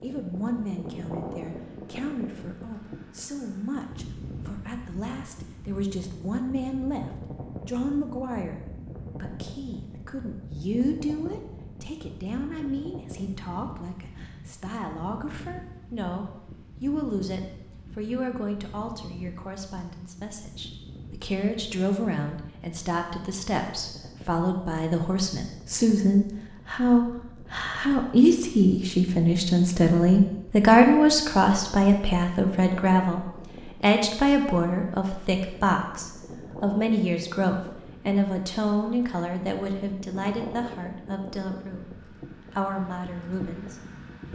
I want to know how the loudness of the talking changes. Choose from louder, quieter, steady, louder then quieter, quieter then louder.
louder then quieter.